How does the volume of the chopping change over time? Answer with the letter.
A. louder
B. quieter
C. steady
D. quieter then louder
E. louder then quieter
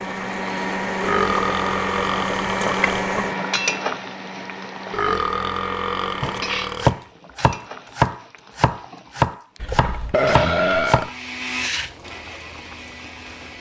B.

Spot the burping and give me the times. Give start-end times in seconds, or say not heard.
1.0-3.0, 4.9-7.0, 9.6-11.1.